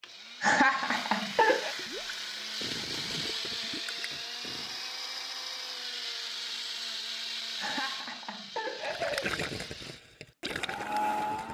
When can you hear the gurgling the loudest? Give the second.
9 s.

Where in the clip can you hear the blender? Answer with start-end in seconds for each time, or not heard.
0.0-11.4.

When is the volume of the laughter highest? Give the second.
1 s.